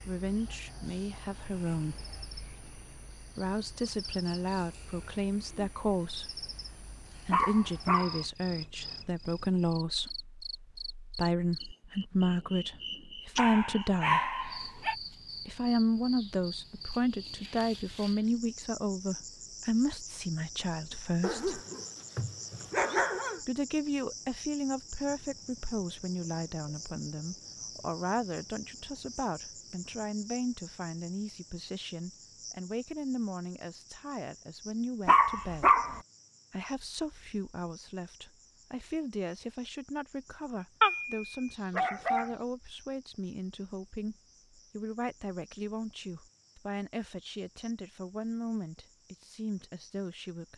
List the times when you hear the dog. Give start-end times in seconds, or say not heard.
7.3-8.2, 13.3-14.9, 21.2-23.4, 35.0-36.0, 40.8-42.4.